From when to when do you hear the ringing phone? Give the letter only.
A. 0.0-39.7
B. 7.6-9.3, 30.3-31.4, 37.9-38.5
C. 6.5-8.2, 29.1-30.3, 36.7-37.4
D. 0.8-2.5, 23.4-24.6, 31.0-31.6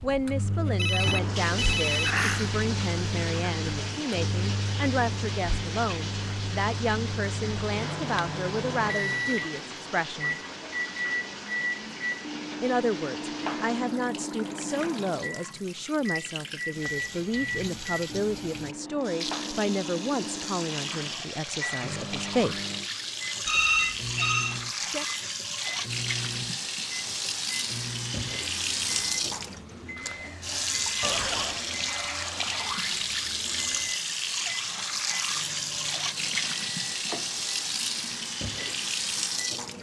D.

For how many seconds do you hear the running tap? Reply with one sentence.
The running tap can be heard for 40 seconds in total.